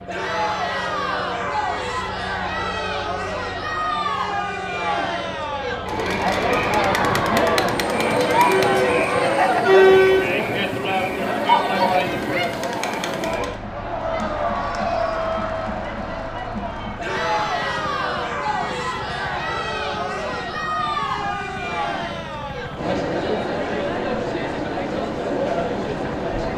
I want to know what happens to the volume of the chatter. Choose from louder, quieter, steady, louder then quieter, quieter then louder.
louder then quieter.